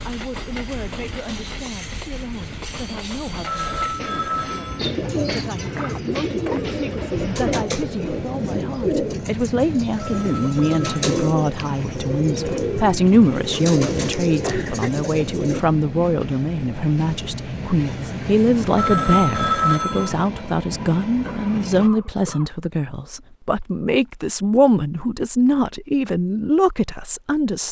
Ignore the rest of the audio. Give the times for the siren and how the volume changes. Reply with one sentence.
You can't hear the siren here.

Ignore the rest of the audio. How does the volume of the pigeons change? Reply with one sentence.
The loudness of the pigeons stays about the same.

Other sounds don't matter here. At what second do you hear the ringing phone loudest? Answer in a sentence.
The loudest moment of the ringing phone is at 20 seconds.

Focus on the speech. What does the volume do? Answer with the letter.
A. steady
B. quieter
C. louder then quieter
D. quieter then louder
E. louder
E.